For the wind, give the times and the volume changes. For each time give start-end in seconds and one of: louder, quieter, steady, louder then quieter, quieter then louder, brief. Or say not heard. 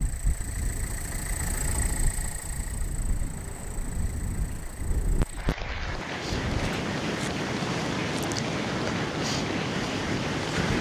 0.0-10.7 louder.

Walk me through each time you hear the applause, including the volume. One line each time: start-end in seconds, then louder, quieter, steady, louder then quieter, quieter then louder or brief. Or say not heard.
5.2-10.7 steady.